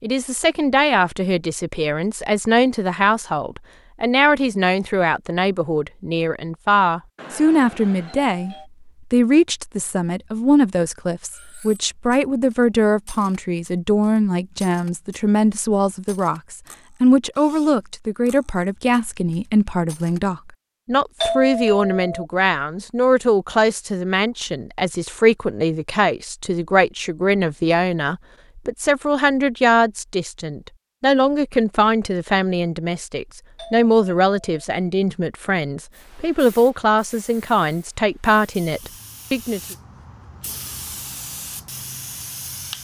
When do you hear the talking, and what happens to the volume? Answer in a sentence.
The talking can be heard from 0.0 to 39.8 s, at a steady volume.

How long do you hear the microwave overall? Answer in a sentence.
You can't hear the microwave here.